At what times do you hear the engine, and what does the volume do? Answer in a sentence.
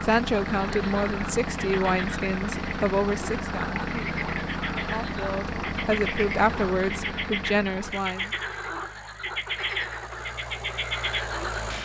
The engine can be heard from 0.0 to 11.8 s, getting quieter.